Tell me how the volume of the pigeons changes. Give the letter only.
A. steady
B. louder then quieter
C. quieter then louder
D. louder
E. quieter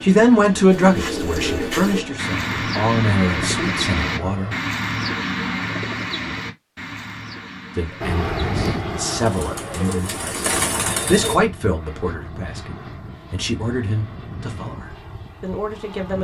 C.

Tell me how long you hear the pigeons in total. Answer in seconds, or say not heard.
11 s.